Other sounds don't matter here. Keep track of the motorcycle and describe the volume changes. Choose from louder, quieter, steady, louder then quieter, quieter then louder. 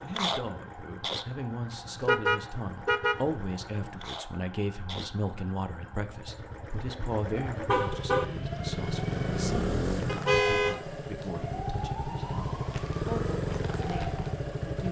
louder.